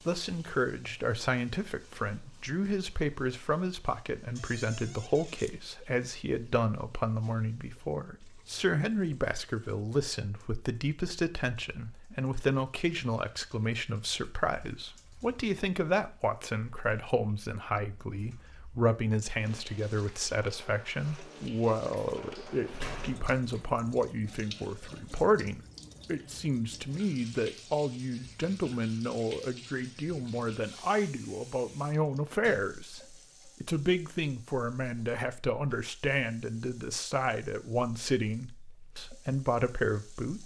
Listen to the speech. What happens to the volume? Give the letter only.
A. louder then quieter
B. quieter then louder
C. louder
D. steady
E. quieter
D.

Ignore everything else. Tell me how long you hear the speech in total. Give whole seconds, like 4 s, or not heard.
40 s.